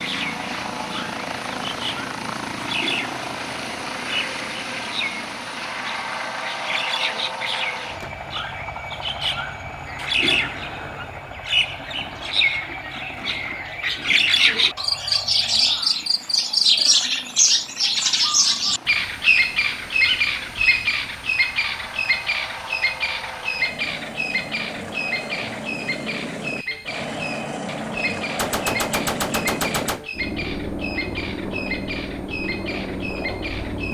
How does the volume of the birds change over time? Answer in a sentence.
The loudness of the birds goes up, then down.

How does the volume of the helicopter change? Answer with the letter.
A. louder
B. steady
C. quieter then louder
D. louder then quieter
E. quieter
C.